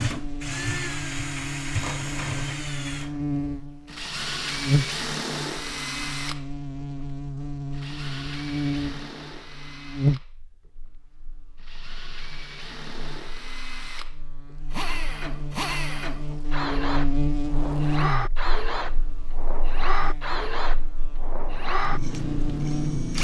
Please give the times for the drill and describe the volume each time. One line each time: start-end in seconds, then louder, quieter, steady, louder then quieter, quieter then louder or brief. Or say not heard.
0.0-23.1 quieter then louder.